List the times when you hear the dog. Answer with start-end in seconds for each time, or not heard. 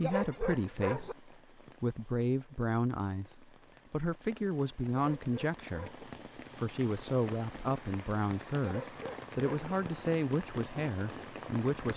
0.0-1.1, 4.9-6.0, 8.6-9.8.